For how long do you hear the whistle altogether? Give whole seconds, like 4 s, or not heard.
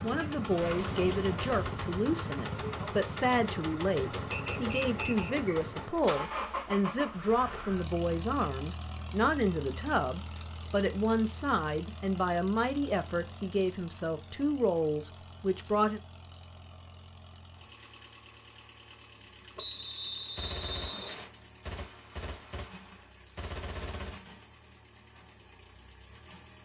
3 s.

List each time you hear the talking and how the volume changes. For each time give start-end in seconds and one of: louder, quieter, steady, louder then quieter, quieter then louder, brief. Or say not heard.
0.0-16.0 steady.